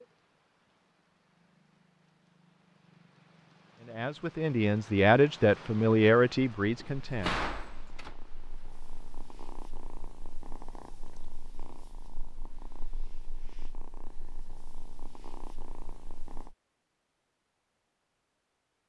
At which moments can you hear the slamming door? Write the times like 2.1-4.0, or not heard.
6.8-8.2.